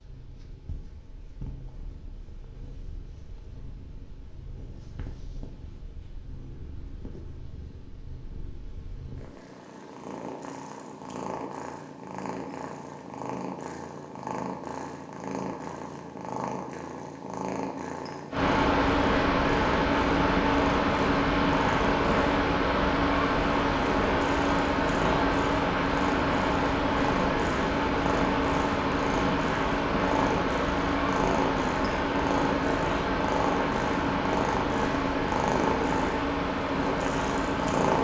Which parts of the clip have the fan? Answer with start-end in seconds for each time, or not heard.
18.3-37.9.